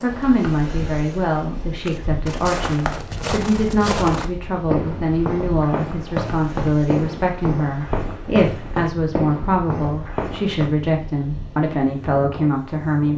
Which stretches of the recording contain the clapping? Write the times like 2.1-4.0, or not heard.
not heard.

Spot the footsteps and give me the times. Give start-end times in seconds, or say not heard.
1.8-10.8.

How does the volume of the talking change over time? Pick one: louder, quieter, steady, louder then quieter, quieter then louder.
steady.